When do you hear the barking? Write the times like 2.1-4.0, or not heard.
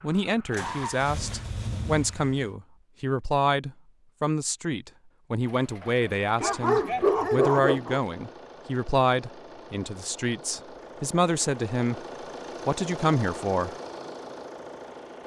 6.4-8.0.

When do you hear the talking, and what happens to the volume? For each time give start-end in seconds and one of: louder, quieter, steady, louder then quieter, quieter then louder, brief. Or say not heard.
0.0-12.0 steady
12.7-13.8 brief.